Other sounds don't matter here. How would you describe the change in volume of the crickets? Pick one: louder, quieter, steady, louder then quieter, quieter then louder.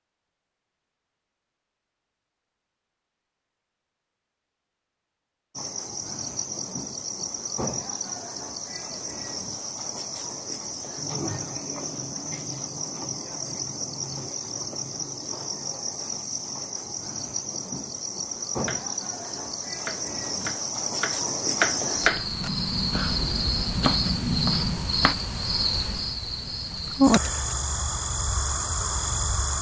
louder.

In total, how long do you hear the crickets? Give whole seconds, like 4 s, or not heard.
24 s.